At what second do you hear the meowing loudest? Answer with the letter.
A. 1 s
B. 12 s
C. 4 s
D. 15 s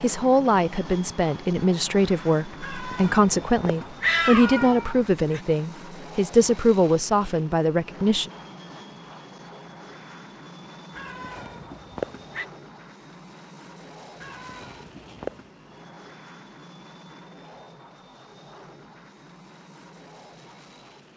C.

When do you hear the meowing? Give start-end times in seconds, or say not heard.
2.6-5.4, 10.9-12.4, 14.2-15.4.